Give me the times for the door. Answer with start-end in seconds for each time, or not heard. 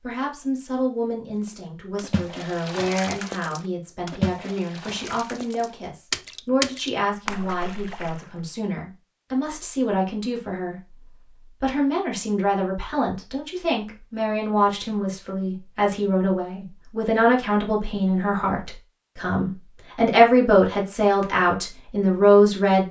not heard.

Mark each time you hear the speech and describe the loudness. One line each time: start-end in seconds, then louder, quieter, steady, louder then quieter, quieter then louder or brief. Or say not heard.
0.0-22.8 louder.